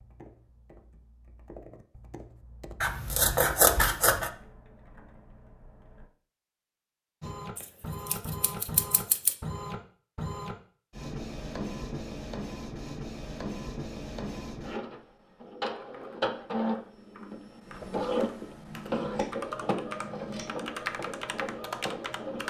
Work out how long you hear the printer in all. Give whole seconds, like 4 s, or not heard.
15 s.